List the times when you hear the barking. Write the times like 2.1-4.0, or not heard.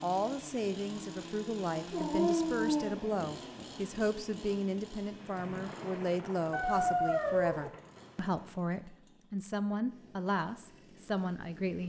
1.9-3.8, 6.5-7.7.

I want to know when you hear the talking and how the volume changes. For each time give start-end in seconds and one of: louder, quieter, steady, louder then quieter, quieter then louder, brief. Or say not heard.
0.0-11.8 steady.